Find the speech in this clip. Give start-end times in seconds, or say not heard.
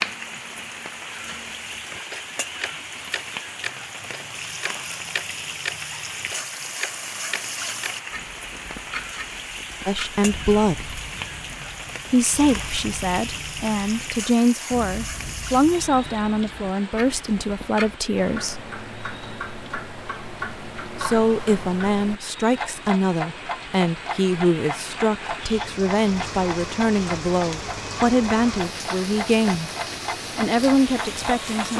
9.8-10.9, 12.1-18.6, 21.0-29.7, 30.4-31.7.